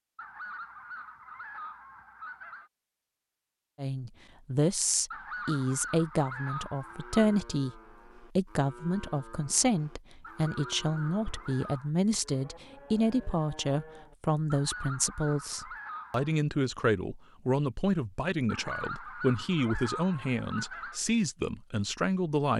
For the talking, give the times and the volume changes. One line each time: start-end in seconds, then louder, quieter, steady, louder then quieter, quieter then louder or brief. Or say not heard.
3.8-22.5 steady.